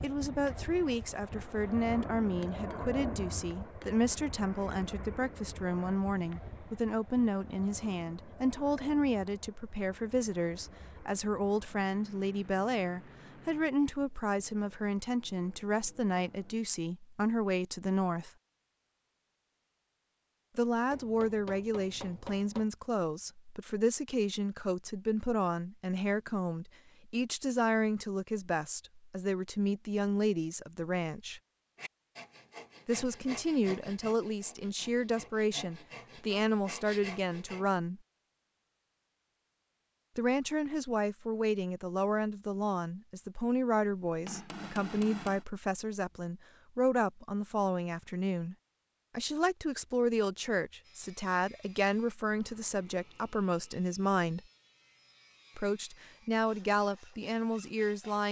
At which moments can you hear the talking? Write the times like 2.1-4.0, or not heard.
0.0-18.3, 20.6-31.4, 32.9-38.0, 40.1-48.5, 49.1-54.4, 55.5-58.2.